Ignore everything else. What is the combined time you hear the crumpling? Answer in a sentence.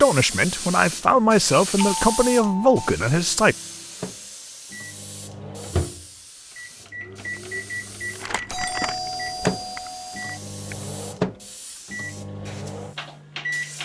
You can hear the crumpling for 3 seconds altogether.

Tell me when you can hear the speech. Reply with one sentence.
The speech can be heard from 0.0 to 3.5 s.